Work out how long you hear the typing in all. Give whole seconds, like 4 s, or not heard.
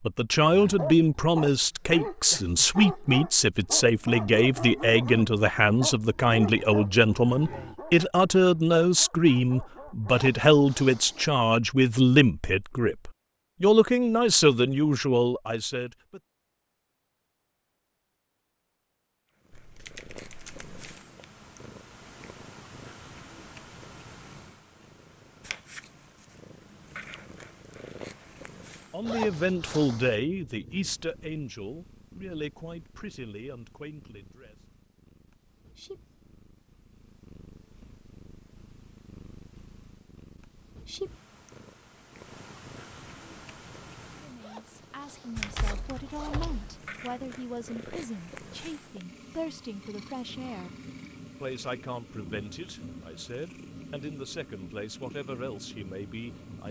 3 s.